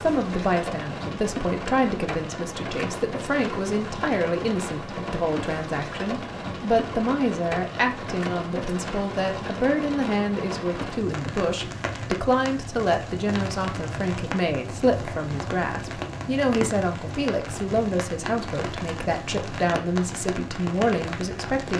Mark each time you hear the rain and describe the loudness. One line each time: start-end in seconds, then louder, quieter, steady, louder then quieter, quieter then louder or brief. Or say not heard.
0.0-21.7 steady.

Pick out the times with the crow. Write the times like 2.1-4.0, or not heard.
not heard.